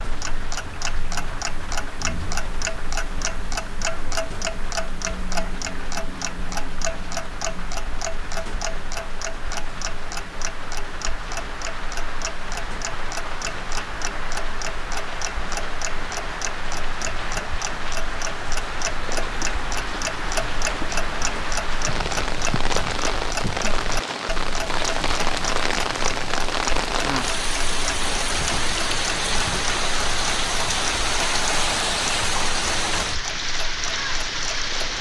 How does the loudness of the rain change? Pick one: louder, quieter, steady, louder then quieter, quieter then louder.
louder.